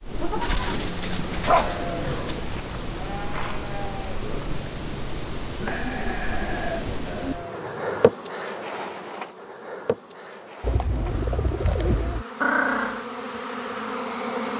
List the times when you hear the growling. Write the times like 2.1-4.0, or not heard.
0.6-2.2, 12.4-13.1.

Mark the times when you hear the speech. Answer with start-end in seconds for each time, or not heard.
not heard.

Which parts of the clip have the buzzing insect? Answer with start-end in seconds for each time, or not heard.
0.0-14.5.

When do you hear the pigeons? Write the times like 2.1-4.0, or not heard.
0.4-2.4, 5.5-7.3, 10.6-12.2.